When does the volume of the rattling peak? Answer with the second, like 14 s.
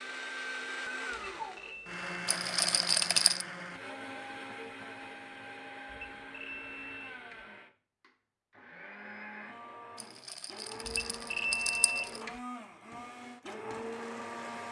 3 s.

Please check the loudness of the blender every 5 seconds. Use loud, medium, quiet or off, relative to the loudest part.
loud, medium, loud.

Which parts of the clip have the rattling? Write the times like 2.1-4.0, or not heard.
2.2-3.5, 10.0-12.2.